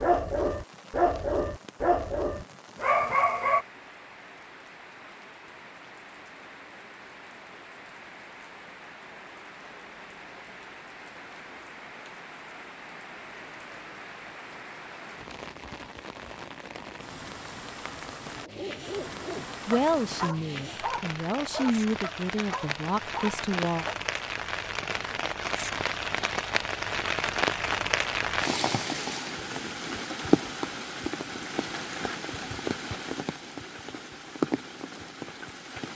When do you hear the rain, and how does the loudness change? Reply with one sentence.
You can hear the rain from 0.0 to 35.9 s, getting louder.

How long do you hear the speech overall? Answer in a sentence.
You can hear the speech for 4 seconds altogether.